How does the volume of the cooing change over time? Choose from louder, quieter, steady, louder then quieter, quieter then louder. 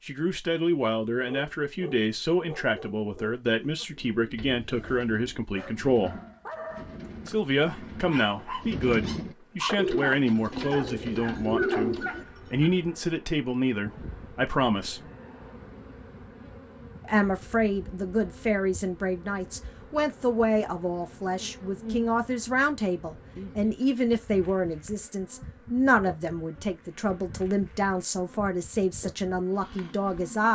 louder.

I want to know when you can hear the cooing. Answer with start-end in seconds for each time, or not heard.
3.8-12.2.